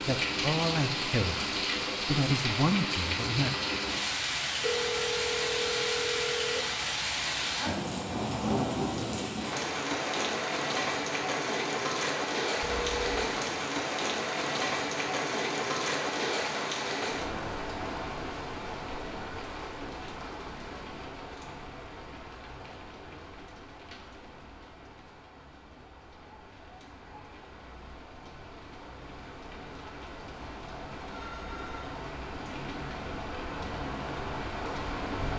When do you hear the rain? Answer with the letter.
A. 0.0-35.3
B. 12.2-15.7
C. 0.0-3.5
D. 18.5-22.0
A.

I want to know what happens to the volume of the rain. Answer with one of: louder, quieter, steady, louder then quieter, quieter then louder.
quieter then louder.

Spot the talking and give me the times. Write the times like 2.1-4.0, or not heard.
0.0-3.5.